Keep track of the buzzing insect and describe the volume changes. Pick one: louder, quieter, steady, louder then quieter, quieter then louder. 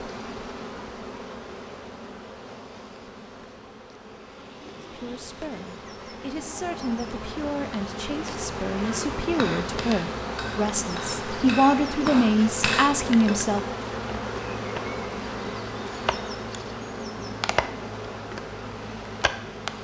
louder.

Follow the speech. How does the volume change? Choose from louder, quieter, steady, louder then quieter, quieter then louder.
louder.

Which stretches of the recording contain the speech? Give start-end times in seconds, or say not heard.
4.8-13.6.